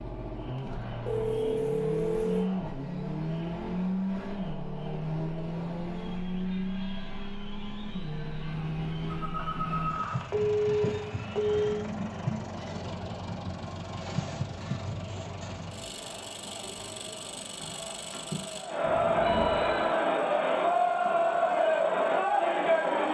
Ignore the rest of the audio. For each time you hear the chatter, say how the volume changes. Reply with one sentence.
The chatter can be heard from 0.0 to 23.0 s, getting louder.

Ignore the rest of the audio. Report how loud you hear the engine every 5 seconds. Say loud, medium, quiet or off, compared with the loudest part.
loud, loud, loud, medium, quiet.